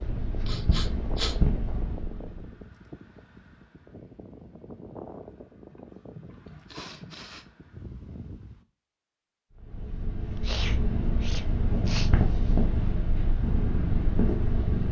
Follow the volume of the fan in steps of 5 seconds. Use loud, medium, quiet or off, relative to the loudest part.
loud, loud, off.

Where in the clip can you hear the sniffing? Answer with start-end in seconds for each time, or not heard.
0.5-1.4, 5.7-7.5, 10.4-12.1.